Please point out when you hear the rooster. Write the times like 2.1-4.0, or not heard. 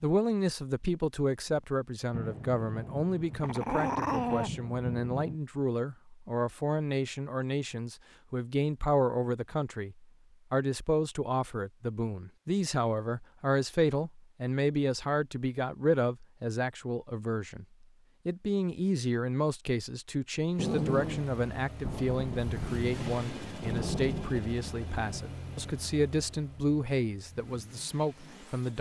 not heard.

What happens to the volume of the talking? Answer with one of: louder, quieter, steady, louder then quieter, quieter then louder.
steady.